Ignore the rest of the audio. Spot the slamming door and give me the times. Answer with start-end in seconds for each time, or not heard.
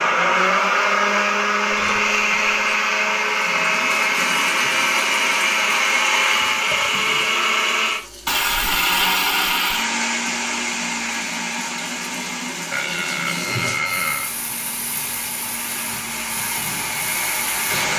not heard.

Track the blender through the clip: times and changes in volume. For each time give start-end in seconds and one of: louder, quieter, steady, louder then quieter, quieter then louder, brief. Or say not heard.
0.0-17.9 quieter.